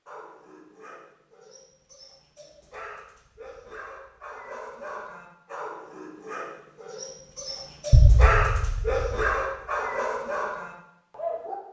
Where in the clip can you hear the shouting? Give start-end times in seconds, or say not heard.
not heard.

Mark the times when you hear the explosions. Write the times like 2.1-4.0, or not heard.
7.9-9.2.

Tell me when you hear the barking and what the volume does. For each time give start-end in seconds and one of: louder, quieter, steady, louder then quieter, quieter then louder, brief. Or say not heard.
0.1-11.6 louder.